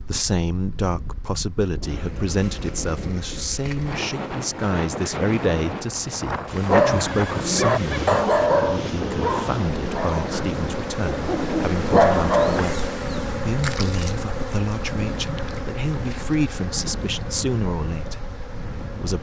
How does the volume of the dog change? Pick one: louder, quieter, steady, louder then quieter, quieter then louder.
quieter then louder.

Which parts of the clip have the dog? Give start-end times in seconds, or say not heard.
6.7-12.7.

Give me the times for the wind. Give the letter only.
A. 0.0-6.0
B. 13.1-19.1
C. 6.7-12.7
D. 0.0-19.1
D.